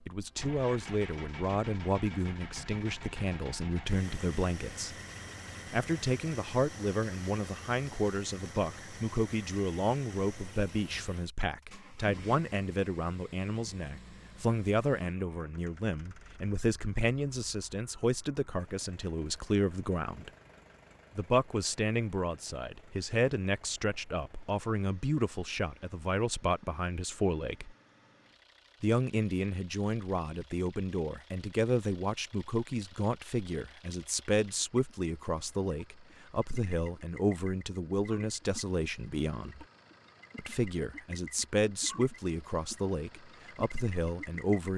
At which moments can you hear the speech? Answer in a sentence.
The speech can be heard from 0.1 to 5.0 s, from 5.7 to 20.3 s, from 21.1 to 27.8 s, from 28.8 to 39.6 s and from 40.4 to 44.7 s.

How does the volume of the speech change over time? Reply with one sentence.
The loudness of the speech stays about the same.